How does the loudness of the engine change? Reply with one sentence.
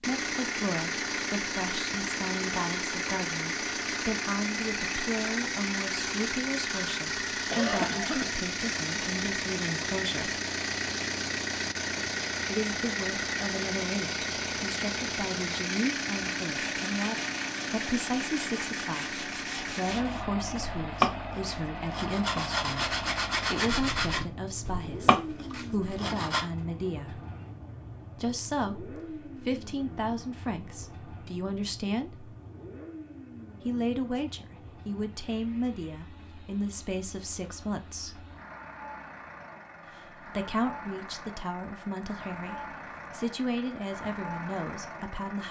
The volume of the engine goes down.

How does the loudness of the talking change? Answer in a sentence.
The loudness of the talking stays about the same.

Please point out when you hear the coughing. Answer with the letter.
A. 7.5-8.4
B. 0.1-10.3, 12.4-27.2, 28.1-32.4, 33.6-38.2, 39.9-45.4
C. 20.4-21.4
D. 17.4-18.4
A.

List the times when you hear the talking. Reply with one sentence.
The talking can be heard from 0.1 to 10.3 s, from 12.4 to 27.2 s, from 28.1 to 32.4 s, from 33.6 to 38.2 s and from 39.9 to 45.4 s.